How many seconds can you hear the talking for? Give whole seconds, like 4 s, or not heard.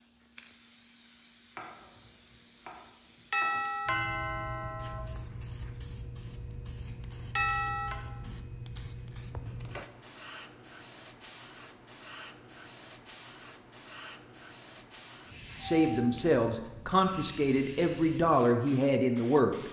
4 s.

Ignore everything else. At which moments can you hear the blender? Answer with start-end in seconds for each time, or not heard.
not heard.